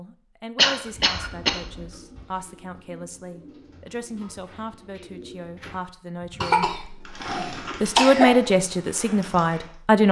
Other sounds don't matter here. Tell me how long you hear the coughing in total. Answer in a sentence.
The coughing can be heard for 3 seconds in total.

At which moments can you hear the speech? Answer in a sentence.
You can hear the speech from 0.0 to 7.0 s and from 7.8 to 10.0 s.